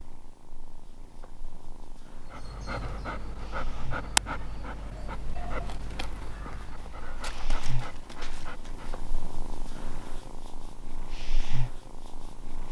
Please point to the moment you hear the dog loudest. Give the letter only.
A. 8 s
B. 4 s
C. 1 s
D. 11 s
B.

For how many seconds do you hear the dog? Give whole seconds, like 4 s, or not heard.
7 s.